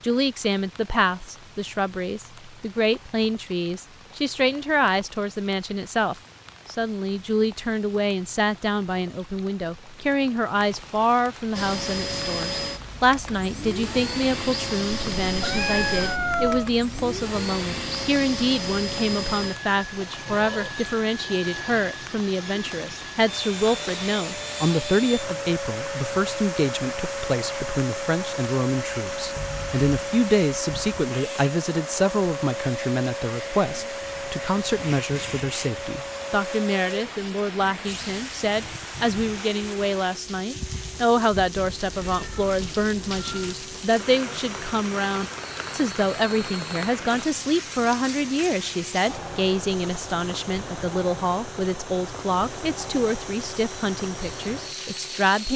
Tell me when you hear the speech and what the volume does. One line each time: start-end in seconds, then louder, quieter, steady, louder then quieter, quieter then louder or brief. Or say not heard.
0.0-55.5 steady.